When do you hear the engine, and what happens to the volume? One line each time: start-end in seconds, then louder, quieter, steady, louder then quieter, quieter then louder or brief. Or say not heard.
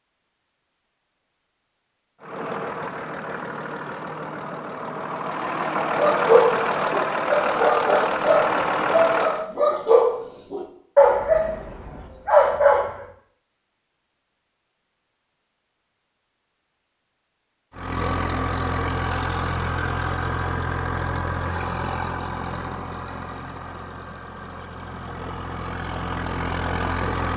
2.2-9.4 louder
17.7-27.3 quieter then louder.